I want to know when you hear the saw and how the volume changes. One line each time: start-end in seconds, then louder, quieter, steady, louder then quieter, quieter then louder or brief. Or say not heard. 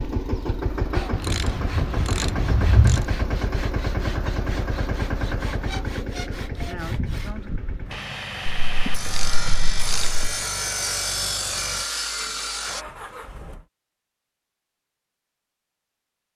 0.9-12.8 louder.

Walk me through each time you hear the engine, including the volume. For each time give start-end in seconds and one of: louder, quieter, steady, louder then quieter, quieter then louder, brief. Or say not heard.
0.0-13.7 quieter.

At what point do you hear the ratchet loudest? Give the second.
3 s.